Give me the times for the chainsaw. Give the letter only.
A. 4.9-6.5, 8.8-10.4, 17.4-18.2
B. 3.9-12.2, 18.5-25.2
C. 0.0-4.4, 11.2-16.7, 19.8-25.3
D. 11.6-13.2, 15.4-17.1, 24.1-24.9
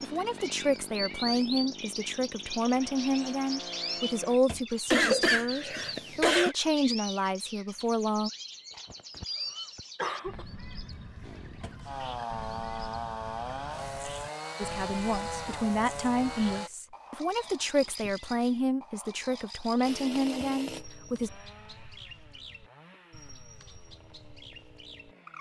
C.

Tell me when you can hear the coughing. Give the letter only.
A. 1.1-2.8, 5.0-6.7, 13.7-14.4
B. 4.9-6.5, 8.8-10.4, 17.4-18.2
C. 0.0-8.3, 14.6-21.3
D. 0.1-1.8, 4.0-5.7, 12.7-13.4
B.